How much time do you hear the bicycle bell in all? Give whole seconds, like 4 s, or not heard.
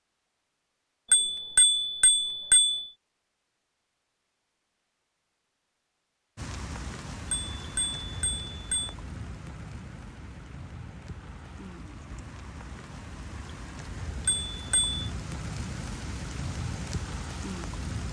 4 s.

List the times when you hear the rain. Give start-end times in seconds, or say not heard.
6.3-18.0.